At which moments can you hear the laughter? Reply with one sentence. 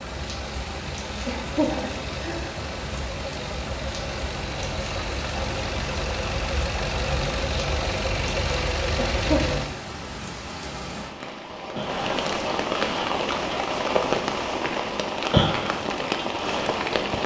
The laughter can be heard from 1.2 to 2.4 s and from 8.9 to 9.6 s.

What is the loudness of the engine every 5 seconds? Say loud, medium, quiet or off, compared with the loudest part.
medium, loud, off, off.